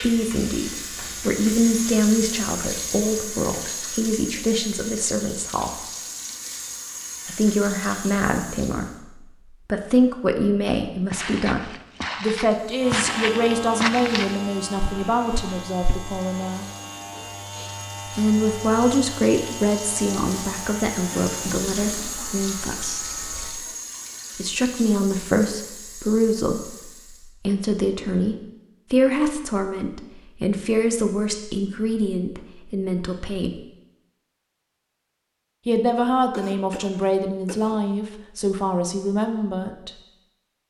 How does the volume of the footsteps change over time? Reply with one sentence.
The volume of the footsteps goes up, then down.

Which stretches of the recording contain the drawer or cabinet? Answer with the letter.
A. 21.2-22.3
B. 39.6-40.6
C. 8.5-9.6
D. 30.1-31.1
A.